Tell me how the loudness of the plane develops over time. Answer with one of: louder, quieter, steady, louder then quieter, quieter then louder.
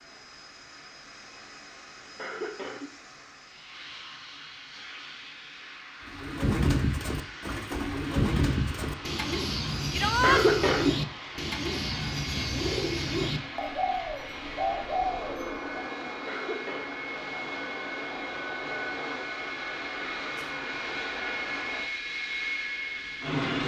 louder.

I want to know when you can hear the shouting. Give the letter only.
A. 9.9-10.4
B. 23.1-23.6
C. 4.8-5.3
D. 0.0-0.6
A.